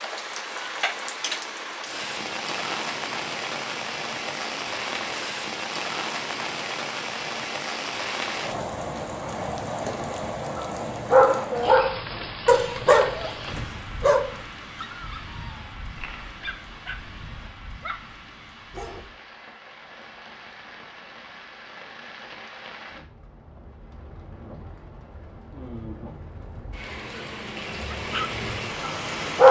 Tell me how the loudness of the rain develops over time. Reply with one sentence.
The volume of the rain goes down, then up.